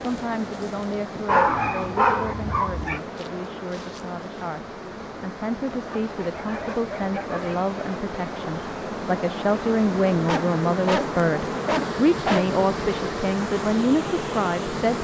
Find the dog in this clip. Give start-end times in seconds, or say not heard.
1.2-3.0, 5.7-7.6, 10.2-12.5.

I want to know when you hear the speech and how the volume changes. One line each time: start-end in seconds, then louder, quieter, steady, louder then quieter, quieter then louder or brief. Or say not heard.
0.0-14.9 louder.